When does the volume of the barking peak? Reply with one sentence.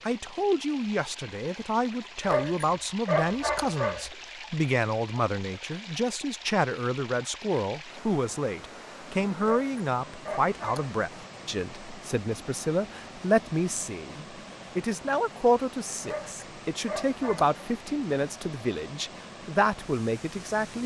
The loudest moment of the barking is at 3 seconds.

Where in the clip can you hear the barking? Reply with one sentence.
You can hear the barking from 2.2 to 4.1 s, from 9.4 to 11.0 s and from 16.0 to 17.6 s.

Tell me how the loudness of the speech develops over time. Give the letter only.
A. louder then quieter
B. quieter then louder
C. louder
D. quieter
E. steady
E.